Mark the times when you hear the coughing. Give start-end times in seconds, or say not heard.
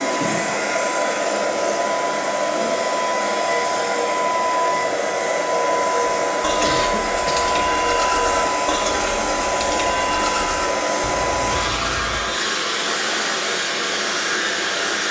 6.6-7.5.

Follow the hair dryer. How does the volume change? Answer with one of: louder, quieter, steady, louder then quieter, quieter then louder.
steady.